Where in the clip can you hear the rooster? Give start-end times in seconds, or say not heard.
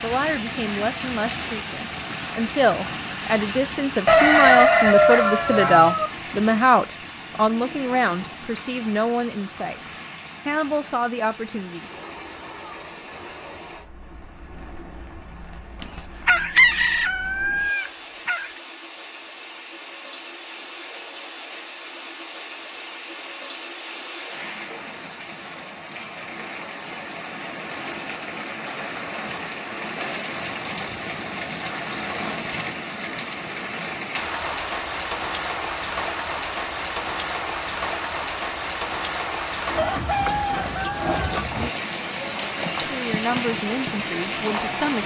4.0-6.1, 15.8-18.5, 39.8-41.4.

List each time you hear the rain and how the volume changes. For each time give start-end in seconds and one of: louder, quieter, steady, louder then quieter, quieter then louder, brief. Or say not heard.
0.0-45.0 quieter then louder.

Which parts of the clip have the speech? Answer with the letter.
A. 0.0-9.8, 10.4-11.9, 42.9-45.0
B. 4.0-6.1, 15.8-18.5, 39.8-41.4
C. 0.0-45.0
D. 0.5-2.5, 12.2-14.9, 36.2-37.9
A.